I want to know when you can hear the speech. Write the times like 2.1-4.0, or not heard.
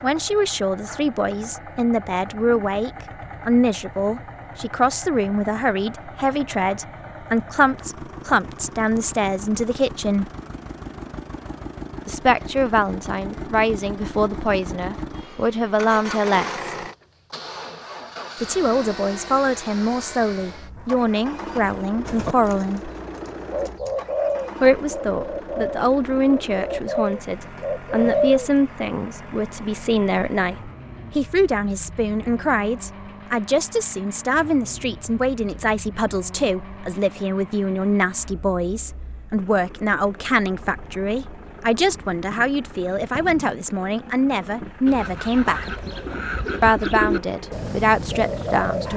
0.0-10.3, 12.1-16.6, 18.4-22.9, 24.6-45.9, 46.6-48.9.